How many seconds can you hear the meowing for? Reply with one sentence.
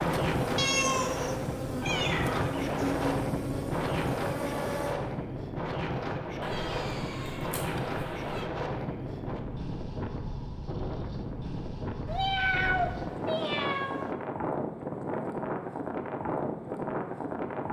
You can hear the meowing for 6 seconds altogether.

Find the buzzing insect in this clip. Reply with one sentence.
You can hear the buzzing insect from 0.0 to 5.0 s.